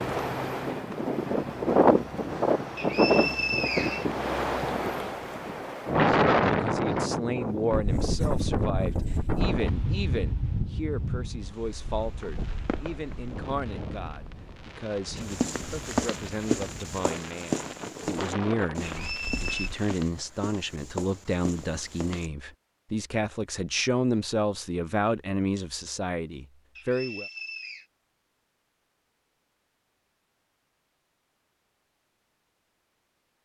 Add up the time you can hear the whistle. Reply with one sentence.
You can hear the whistle for 3 seconds altogether.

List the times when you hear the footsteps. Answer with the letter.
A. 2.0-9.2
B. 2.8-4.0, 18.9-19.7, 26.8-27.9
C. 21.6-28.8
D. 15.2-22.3
D.